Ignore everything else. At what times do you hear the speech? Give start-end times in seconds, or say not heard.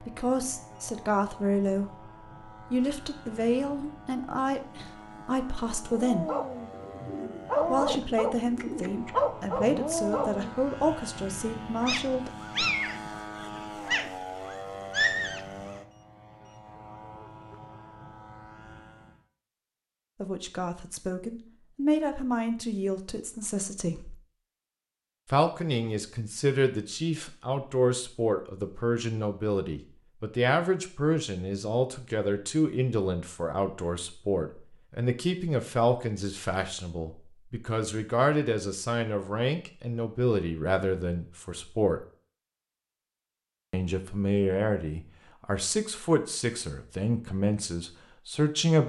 0.0-1.9, 2.7-6.2, 7.7-12.3, 20.2-24.1, 25.3-42.0, 43.7-48.8.